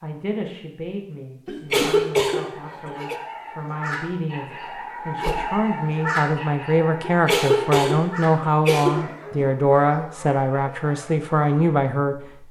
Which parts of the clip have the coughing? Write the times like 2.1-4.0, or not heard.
1.4-3.1, 7.0-9.1.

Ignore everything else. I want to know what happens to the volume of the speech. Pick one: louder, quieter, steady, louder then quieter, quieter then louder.
louder.